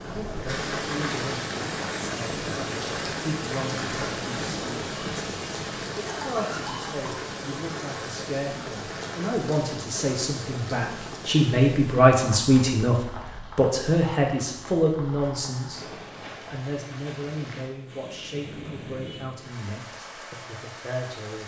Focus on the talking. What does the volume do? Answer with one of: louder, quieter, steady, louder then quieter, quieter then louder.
louder then quieter.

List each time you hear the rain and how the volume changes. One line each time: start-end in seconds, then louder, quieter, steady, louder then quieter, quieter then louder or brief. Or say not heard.
0.0-21.4 quieter.